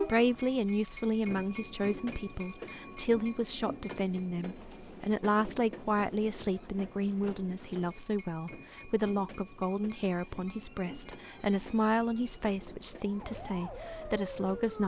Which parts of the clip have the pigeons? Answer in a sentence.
You can't hear the pigeons here.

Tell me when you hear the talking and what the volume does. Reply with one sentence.
The talking can be heard from 0.0 to 14.8 s, at a steady volume.